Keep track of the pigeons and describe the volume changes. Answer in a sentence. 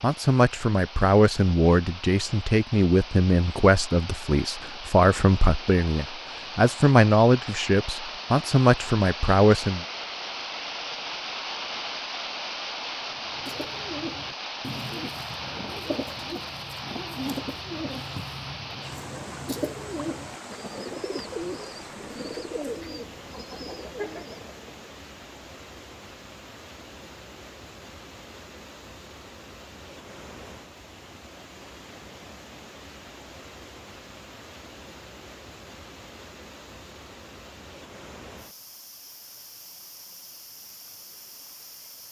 The loudness of the pigeons stays about the same.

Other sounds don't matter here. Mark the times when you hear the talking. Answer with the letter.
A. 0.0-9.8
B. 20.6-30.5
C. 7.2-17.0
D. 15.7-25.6
A.